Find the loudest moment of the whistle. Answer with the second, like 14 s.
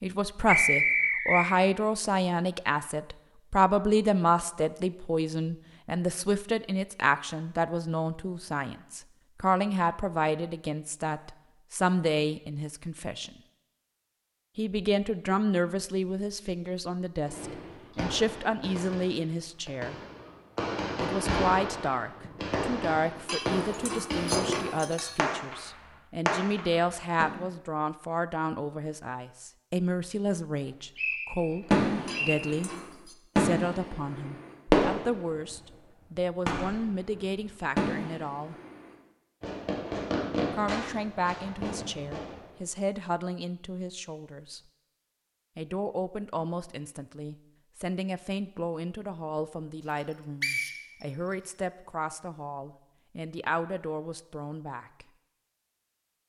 1 s.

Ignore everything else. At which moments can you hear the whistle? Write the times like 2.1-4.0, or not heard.
0.5-1.5, 30.9-32.5, 50.4-51.5.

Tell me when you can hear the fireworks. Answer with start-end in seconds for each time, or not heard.
17.2-27.2, 31.7-35.6, 36.5-42.5.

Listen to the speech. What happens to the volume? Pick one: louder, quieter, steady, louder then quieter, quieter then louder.
quieter.